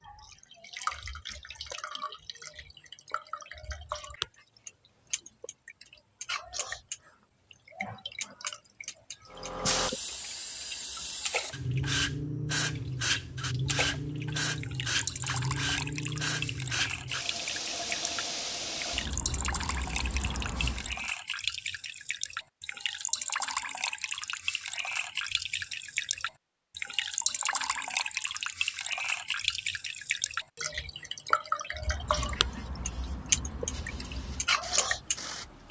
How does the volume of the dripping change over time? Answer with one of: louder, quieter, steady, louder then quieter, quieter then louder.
louder.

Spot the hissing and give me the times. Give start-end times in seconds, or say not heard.
9.3-21.1, 31.7-35.6.